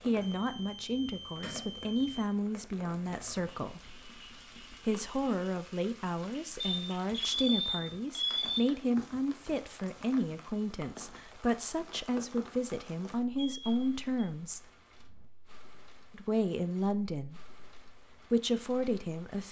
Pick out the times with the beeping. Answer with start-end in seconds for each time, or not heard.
0.2-2.2, 6.6-8.6, 13.3-14.2.